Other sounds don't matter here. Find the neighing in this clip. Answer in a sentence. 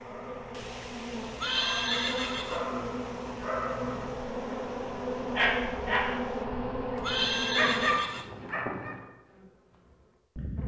You can hear the neighing from 1.4 to 2.6 s and from 7.0 to 8.5 s.